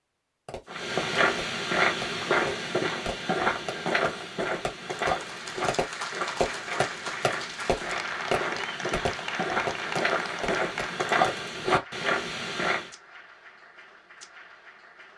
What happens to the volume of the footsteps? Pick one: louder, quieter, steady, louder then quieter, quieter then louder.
quieter then louder.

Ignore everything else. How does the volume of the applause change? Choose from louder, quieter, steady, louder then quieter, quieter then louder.
quieter.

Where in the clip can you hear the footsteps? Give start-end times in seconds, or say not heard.
0.7-12.9.